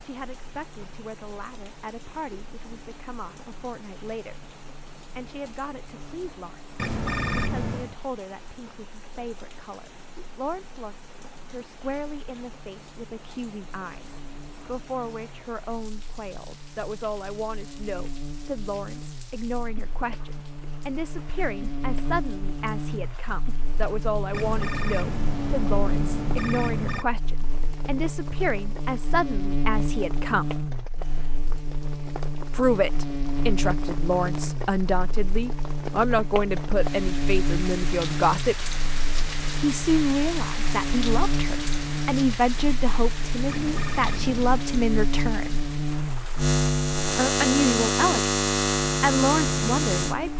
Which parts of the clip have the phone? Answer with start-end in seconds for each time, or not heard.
6.8-8.0, 24.3-27.1, 43.5-44.6.